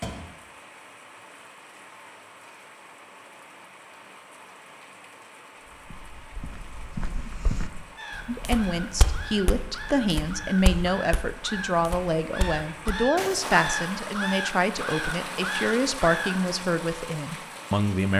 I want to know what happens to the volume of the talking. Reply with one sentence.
The volume of the talking stays about the same.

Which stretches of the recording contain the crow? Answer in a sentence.
You can hear the crow from 8.0 to 16.4 s.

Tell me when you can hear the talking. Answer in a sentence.
The talking can be heard from 8.2 to 18.1 s.